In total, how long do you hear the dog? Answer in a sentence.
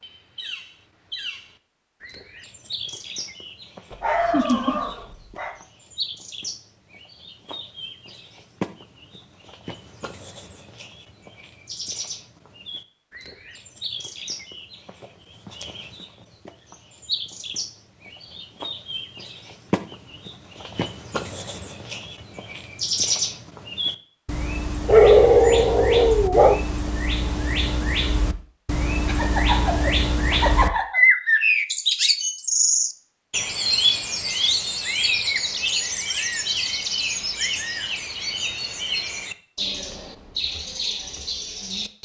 The dog can be heard for 3 seconds in total.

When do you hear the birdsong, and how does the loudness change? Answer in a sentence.
You can hear the birdsong from 0.0 to 41.9 s, getting louder.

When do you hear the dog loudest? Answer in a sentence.
The loudest moment of the dog is at 25 seconds.